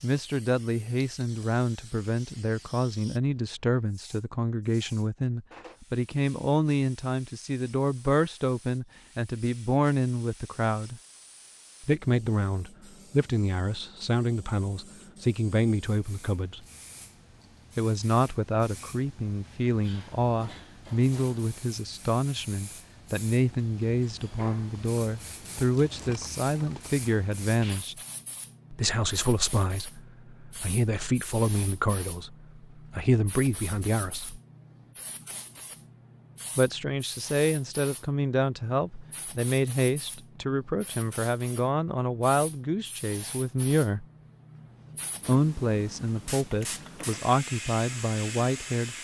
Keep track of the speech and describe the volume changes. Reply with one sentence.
The volume of the speech stays about the same.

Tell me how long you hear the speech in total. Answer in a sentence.
The speech can be heard for 43 seconds in total.